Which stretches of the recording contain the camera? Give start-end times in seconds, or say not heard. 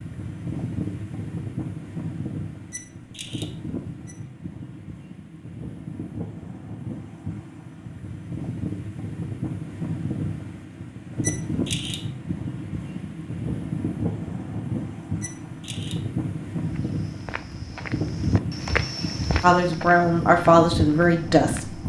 2.7-4.2, 11.2-12.0, 15.2-15.9.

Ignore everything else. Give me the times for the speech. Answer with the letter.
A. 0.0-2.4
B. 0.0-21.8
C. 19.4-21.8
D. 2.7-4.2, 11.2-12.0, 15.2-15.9
C.